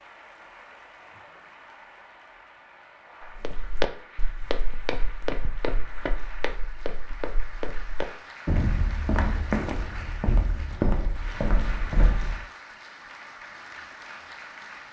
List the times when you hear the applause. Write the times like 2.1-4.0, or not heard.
0.0-14.8.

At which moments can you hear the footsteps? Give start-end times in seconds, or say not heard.
3.4-12.4.